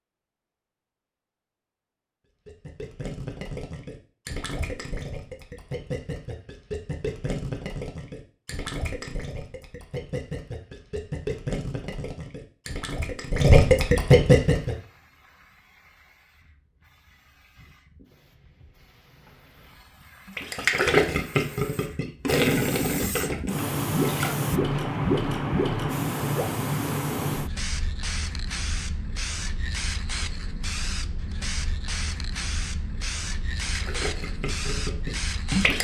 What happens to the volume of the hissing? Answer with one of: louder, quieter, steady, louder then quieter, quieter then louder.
louder then quieter.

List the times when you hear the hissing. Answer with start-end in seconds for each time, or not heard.
14.6-35.7.